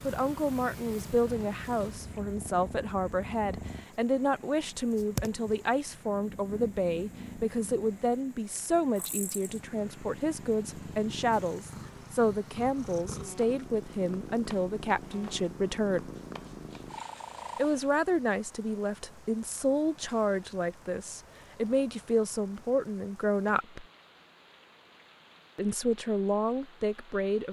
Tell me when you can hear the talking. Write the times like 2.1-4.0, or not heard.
0.0-16.1, 17.6-23.9, 25.6-27.4.